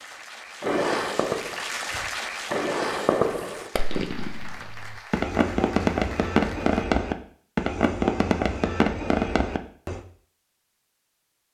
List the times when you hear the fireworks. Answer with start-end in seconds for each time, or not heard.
0.6-10.0.